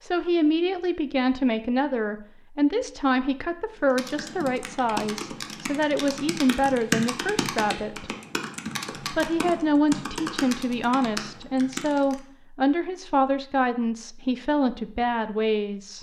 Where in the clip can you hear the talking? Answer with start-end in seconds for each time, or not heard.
0.0-8.1, 9.1-15.9.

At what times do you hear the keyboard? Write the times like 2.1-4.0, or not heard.
3.9-12.2.